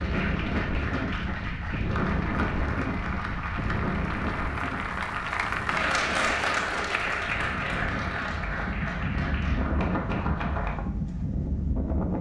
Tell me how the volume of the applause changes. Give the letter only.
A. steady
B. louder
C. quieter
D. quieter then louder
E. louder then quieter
E.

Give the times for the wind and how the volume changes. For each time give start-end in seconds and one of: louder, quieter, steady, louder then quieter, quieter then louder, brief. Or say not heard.
0.0-12.1 quieter then louder.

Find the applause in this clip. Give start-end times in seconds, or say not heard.
0.0-10.8.